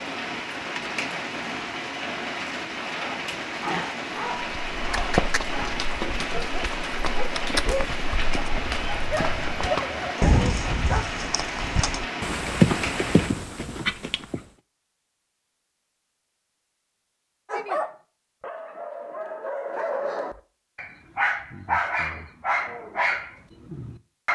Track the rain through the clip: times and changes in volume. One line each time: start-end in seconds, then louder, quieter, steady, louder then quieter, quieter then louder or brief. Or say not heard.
0.0-13.3 steady.